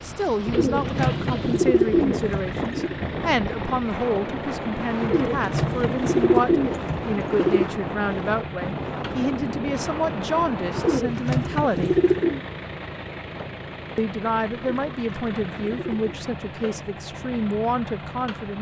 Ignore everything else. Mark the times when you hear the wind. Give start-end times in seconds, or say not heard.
0.0-11.0.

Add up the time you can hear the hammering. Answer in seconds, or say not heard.
not heard.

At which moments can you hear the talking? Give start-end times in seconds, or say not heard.
0.0-11.9, 13.9-18.5.